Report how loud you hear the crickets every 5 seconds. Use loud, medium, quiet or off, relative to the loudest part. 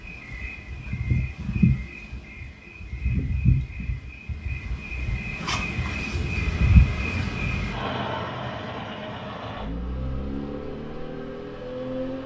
loud, loud, off.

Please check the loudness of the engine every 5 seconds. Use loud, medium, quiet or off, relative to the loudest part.
off, loud, loud.